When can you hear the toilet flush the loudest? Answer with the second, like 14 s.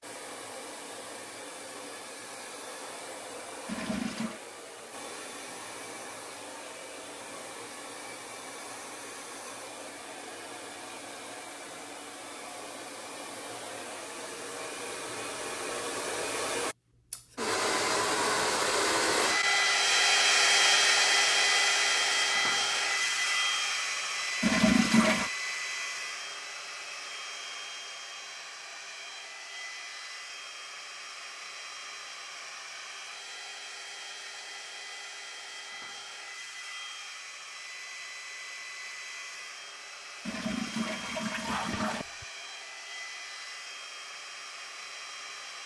25 s.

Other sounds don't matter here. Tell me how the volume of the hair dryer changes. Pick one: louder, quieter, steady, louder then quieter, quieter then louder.
louder then quieter.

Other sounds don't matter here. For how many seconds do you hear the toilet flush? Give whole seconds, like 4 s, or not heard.
4 s.